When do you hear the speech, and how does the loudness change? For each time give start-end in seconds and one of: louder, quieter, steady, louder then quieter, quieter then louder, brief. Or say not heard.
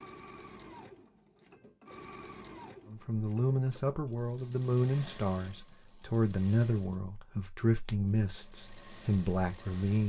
2.9-10.0 steady.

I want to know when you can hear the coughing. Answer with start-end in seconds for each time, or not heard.
not heard.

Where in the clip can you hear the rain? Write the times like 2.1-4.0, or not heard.
not heard.